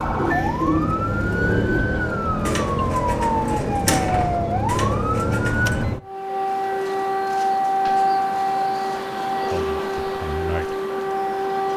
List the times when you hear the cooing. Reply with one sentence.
You can hear the cooing from 0.0 to 5.8 s.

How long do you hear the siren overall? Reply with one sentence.
You can hear the siren for 12 seconds altogether.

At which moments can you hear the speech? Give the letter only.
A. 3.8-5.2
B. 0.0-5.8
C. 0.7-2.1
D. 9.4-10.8
D.